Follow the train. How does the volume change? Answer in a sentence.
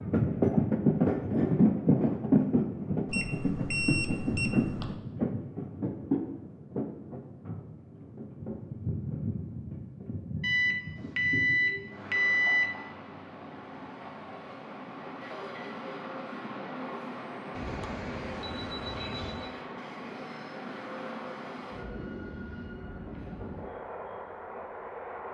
The volume of the train goes down.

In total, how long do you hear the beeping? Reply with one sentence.
The beeping can be heard for 6 seconds in total.